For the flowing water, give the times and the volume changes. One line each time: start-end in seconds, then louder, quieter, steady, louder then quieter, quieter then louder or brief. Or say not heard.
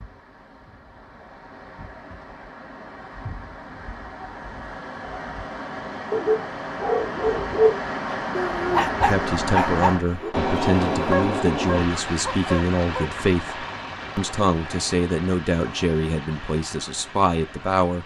0.0-18.0 louder then quieter.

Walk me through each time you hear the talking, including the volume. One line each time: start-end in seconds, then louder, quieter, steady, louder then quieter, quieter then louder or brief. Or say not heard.
9.0-18.0 steady.